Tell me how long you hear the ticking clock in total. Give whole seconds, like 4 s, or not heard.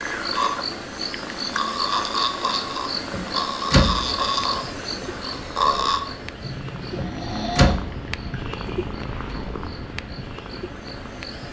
not heard.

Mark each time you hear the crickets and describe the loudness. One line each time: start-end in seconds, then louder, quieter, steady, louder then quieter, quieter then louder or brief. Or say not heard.
0.0-11.4 quieter.